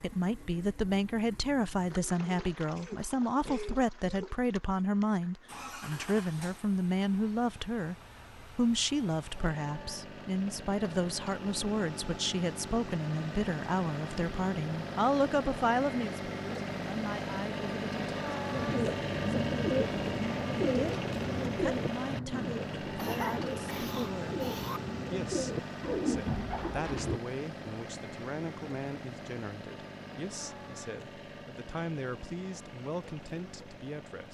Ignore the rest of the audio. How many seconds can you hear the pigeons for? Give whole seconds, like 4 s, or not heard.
9 s.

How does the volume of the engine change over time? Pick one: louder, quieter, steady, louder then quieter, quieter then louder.
louder then quieter.